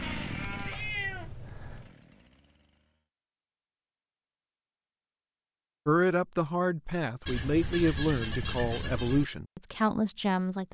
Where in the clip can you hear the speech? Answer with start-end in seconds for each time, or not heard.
5.8-10.7.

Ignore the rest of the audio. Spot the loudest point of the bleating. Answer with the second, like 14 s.
8 s.